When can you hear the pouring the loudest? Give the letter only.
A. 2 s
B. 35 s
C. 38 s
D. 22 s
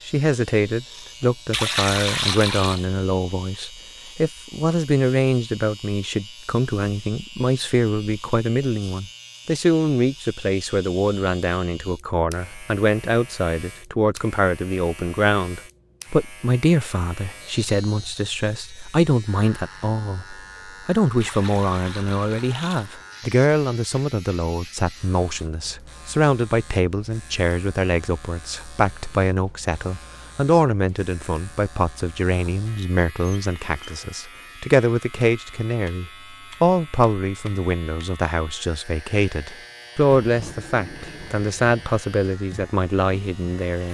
A.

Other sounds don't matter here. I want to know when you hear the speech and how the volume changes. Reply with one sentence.
The speech can be heard from 0.1 to 43.8 s, at a steady volume.